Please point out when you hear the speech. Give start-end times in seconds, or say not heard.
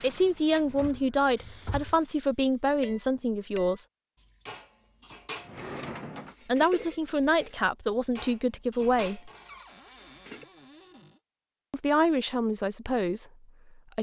0.0-3.9, 6.5-9.3, 11.7-13.2.